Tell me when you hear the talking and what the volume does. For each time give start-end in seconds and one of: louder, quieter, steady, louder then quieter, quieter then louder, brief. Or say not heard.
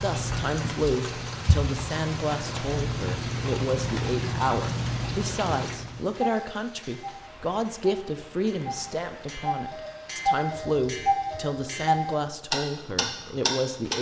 0.0-13.9 steady.